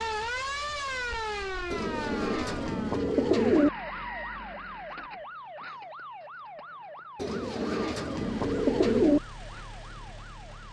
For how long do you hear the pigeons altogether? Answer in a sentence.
You can hear the pigeons for 4 seconds altogether.